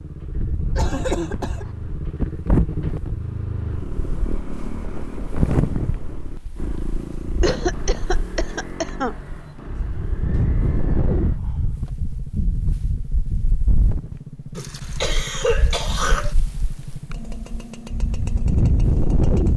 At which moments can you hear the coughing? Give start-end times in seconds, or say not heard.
0.8-1.8, 7.4-9.2, 14.6-16.4.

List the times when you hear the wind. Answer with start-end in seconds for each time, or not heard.
0.2-19.5.